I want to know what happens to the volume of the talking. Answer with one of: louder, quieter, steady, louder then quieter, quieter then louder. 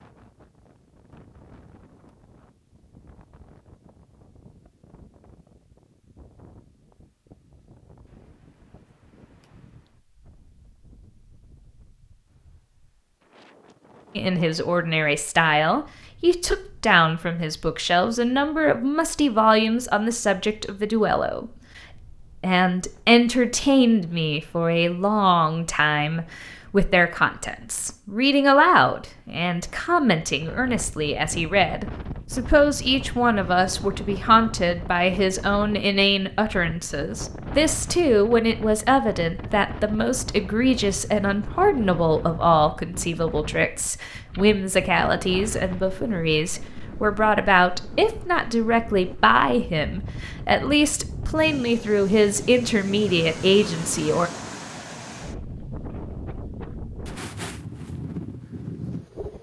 steady.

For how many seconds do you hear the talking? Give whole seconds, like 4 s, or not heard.
39 s.